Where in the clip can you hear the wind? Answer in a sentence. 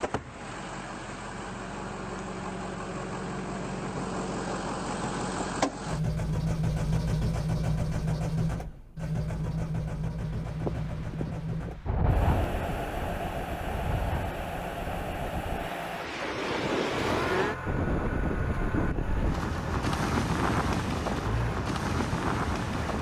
The wind can be heard from 10.2 to 22.9 s.